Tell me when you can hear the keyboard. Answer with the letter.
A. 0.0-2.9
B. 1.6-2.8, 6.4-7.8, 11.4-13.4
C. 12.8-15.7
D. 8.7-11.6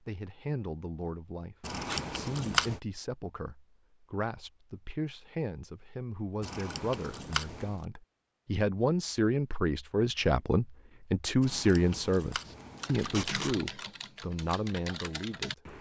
C.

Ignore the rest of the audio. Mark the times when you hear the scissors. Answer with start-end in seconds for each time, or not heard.
1.6-2.8, 6.4-7.8, 11.4-13.4.